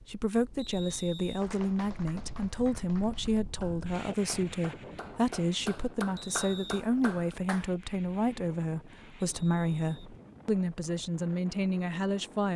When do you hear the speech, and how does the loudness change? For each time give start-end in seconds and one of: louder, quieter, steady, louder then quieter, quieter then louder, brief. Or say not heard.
0.0-12.5 steady.